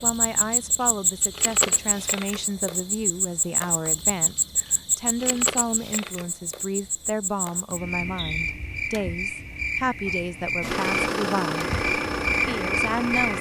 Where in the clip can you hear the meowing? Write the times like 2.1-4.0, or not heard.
not heard.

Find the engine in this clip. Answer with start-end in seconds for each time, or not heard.
10.6-13.3.